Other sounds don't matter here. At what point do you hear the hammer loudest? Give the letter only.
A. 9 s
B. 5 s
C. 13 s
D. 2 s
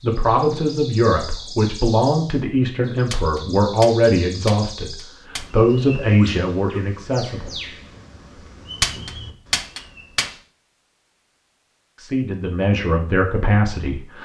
A.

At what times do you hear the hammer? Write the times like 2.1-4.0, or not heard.
3.1-5.5, 8.8-10.3.